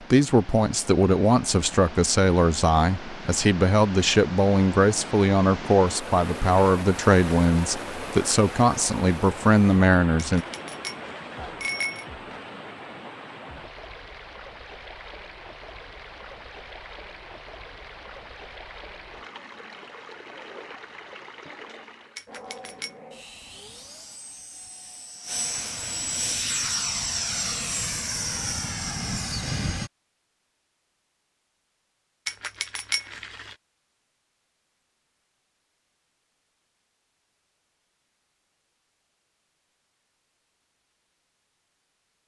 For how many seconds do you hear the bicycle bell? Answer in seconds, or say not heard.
4 s.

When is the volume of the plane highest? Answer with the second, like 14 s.
27 s.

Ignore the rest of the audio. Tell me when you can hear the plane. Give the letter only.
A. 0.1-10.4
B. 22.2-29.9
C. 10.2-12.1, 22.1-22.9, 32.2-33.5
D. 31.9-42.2
B.